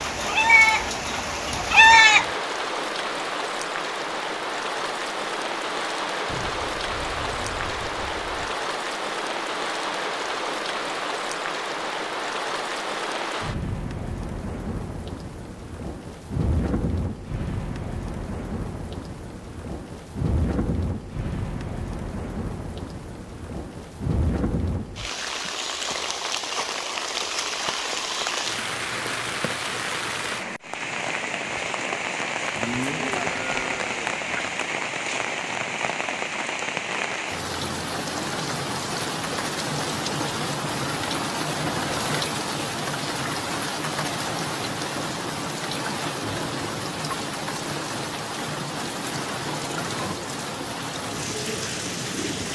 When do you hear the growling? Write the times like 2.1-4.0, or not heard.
not heard.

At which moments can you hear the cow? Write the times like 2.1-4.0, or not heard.
6.2-8.4, 32.5-34.5.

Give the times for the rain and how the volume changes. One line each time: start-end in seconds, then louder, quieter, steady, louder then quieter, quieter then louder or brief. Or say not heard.
0.0-52.5 steady.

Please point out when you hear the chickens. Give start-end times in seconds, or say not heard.
0.2-2.2.